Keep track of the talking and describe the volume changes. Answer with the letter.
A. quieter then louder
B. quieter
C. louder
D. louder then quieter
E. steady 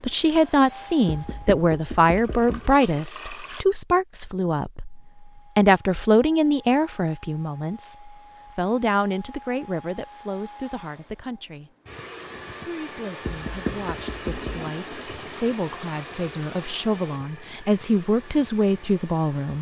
A.